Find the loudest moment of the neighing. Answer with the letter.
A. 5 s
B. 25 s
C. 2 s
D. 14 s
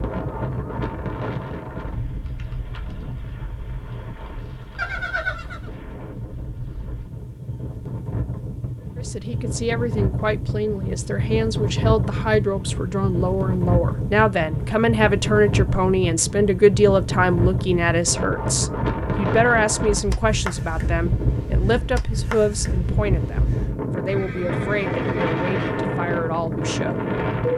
A.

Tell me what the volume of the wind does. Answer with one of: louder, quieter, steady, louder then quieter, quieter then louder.
louder.